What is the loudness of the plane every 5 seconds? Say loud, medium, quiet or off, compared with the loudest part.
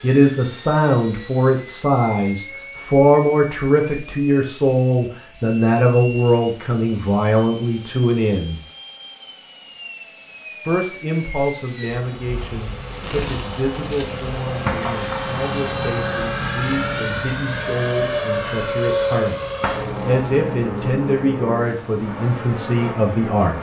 quiet, quiet, medium, loud, medium.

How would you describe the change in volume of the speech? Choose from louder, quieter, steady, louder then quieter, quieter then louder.
quieter then louder.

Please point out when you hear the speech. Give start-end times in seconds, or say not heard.
0.0-8.6, 10.7-23.5.